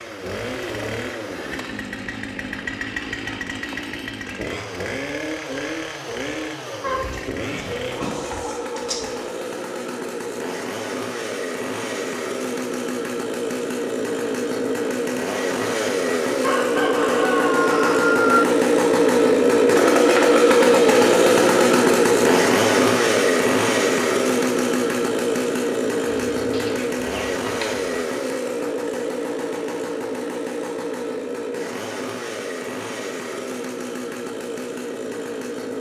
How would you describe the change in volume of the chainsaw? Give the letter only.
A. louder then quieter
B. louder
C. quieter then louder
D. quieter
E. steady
A.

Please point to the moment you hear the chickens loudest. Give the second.
18 s.